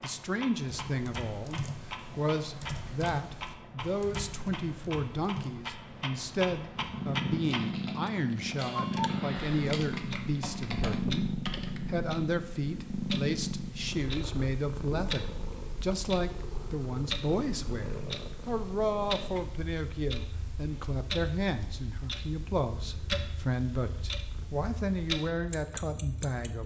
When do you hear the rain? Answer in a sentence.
The rain can't be heard in this clip.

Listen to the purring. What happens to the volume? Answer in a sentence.
The loudness of the purring goes down.